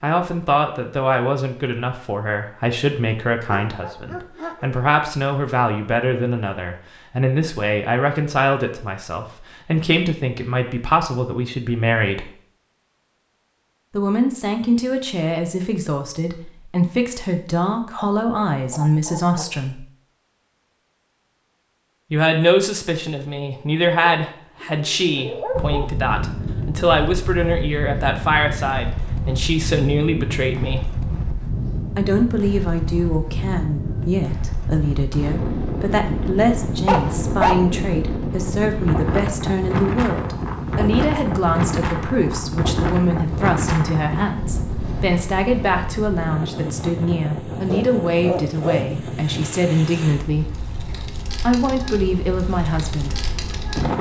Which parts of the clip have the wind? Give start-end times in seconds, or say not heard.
25.5-53.9.